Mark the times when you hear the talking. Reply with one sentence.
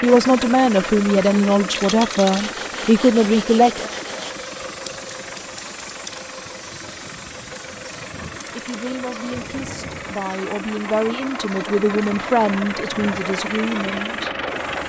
The talking can be heard from 0.0 to 3.9 s and from 8.6 to 14.3 s.